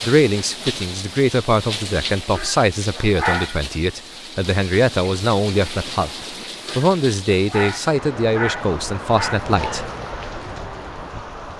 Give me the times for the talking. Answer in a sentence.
The talking can be heard from 0.0 to 9.9 s.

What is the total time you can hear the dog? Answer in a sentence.
The dog can be heard for 4 seconds in total.